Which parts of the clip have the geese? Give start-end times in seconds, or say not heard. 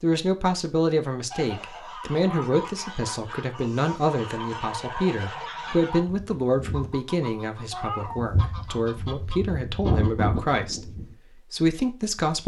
1.3-11.2.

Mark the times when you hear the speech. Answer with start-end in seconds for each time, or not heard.
0.0-12.4.